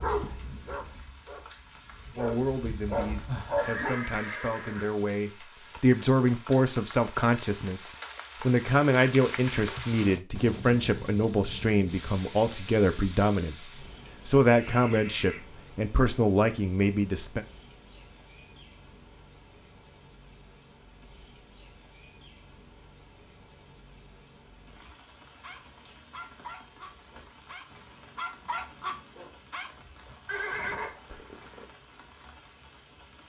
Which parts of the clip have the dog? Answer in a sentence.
You can hear the dog from 0.0 to 4.0 s and from 25.4 to 30.9 s.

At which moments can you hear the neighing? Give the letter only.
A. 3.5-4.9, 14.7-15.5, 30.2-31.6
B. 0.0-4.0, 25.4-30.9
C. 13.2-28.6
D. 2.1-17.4
A.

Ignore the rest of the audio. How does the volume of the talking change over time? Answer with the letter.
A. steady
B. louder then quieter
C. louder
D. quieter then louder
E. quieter
C.